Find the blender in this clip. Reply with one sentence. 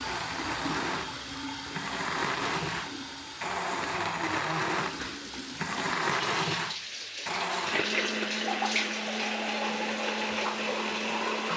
You can hear the blender from 0.0 to 11.5 s.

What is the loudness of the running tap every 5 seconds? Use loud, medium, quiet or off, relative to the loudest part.
medium, loud, loud.